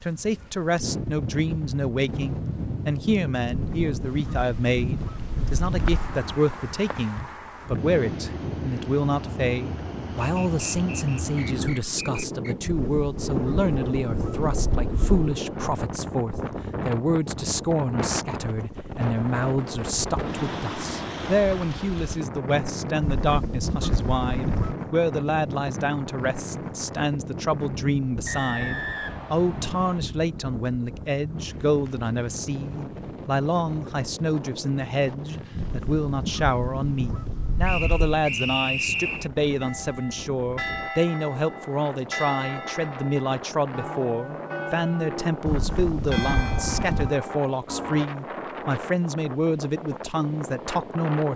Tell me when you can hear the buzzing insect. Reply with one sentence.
The buzzing insect can't be heard in this clip.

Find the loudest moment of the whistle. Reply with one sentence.
The volume of the whistle peaks at 39 seconds.